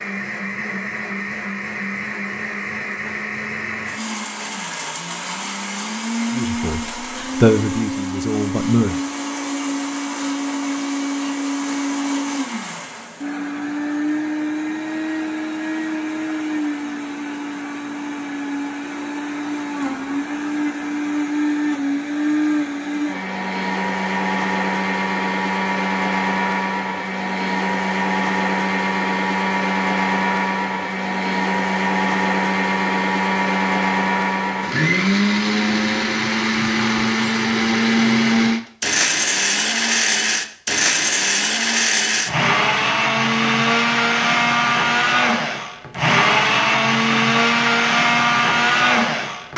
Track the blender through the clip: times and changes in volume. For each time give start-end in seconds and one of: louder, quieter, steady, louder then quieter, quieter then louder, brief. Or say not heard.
0.0-49.5 louder.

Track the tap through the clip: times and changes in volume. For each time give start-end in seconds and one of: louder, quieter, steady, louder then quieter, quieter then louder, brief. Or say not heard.
not heard.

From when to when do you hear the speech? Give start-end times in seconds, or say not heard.
6.3-6.8, 7.4-8.9.